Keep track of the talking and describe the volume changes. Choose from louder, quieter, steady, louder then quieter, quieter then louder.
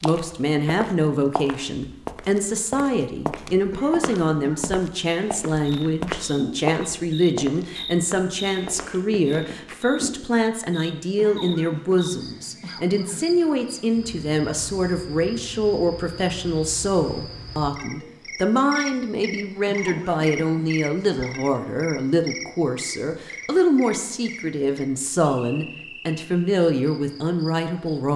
steady.